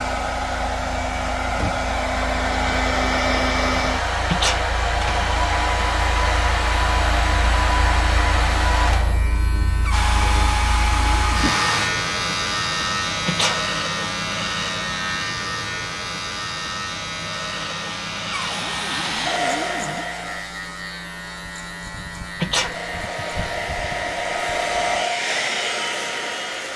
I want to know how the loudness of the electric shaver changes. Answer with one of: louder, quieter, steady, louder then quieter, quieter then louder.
louder then quieter.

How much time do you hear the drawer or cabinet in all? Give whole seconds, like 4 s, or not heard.
4 s.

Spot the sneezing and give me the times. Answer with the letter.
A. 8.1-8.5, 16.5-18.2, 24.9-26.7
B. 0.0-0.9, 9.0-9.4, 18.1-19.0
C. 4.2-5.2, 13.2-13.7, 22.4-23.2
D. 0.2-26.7
C.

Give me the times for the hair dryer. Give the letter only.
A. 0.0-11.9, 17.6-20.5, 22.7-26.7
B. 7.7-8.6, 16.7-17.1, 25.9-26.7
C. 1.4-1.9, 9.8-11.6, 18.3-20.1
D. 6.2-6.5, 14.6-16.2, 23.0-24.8
A.